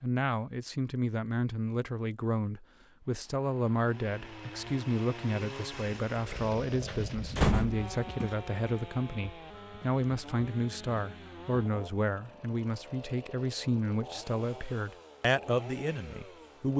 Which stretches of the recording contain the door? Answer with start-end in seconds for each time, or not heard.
6.8-8.3.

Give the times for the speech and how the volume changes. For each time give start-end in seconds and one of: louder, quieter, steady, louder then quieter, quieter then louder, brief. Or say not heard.
0.0-16.7 steady.